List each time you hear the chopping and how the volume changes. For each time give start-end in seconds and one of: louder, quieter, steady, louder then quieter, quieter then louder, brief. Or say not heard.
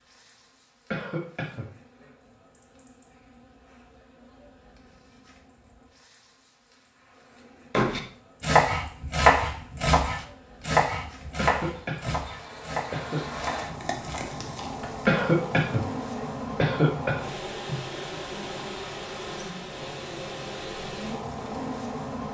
7.8-15.1 quieter.